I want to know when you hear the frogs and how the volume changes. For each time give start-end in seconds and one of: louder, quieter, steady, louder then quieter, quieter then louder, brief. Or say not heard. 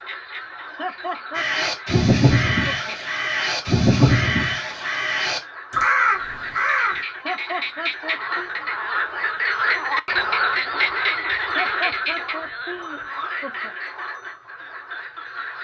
0.0-15.5 louder then quieter.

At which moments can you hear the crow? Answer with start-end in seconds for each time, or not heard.
1.4-7.0.